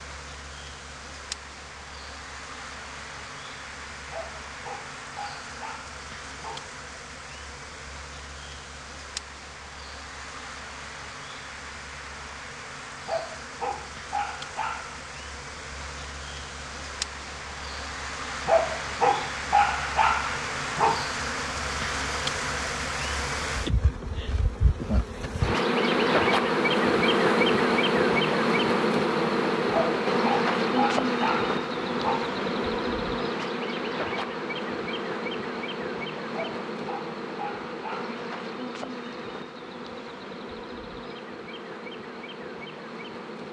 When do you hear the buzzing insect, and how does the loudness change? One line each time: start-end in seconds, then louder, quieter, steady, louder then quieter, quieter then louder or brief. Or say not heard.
0.0-43.4 louder then quieter.